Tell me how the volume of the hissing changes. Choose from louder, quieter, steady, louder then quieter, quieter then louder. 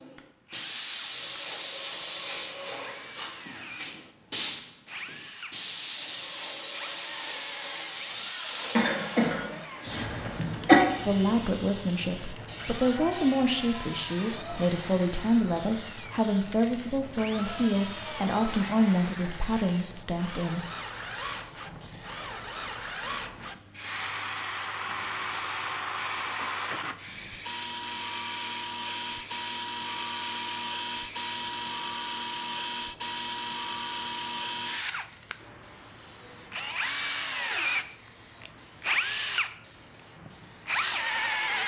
quieter.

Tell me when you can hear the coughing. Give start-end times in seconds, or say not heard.
8.8-10.8.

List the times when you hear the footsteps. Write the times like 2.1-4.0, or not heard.
not heard.